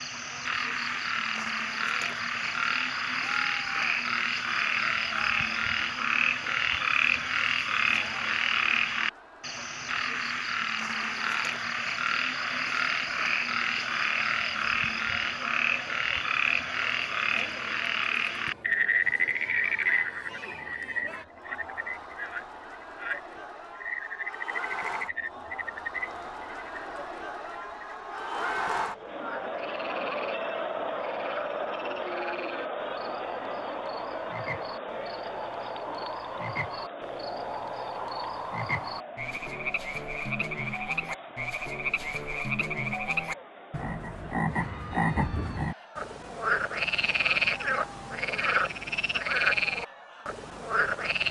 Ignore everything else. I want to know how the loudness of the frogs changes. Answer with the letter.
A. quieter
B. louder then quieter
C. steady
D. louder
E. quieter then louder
E.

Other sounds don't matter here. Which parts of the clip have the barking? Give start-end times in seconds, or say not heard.
not heard.